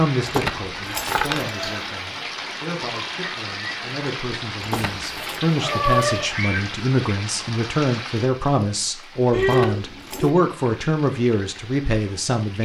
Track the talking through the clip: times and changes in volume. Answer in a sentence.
You can hear the talking from 0.0 to 12.6 s, getting louder.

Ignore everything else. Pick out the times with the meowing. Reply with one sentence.
You can hear the meowing from 1.3 to 1.8 s, from 4.9 to 6.3 s and from 9.3 to 10.3 s.